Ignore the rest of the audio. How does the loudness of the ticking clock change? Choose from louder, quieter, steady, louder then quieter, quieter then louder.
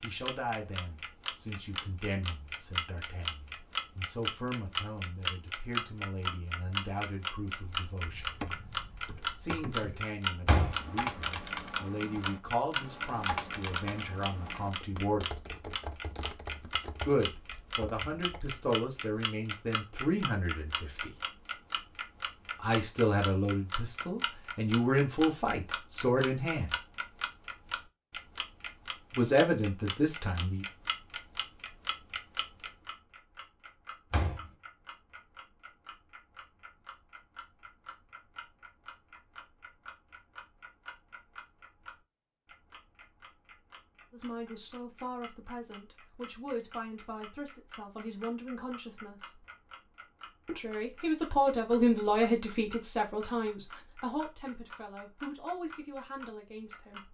quieter.